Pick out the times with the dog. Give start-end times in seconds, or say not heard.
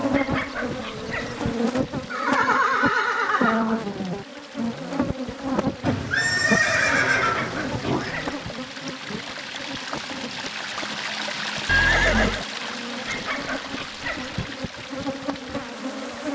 0.1-1.6, 7.3-8.6, 13.1-14.6.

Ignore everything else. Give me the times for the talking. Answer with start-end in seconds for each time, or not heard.
not heard.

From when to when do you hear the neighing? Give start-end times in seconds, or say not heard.
2.1-3.8, 5.8-8.2, 11.7-12.4.